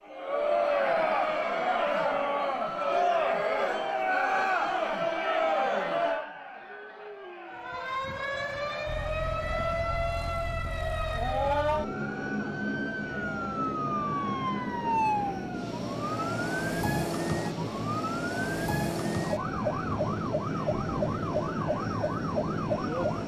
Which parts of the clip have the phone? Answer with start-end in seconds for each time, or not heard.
not heard.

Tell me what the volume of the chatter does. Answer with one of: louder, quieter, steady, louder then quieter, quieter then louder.
quieter.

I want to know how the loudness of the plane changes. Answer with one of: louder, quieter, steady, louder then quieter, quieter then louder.
louder.